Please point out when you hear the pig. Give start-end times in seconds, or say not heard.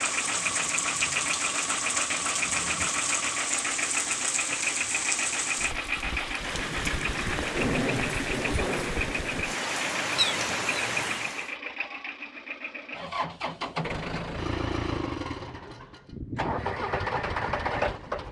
not heard.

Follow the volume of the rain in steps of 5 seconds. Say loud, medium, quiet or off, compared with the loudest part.
loud, loud, loud, off.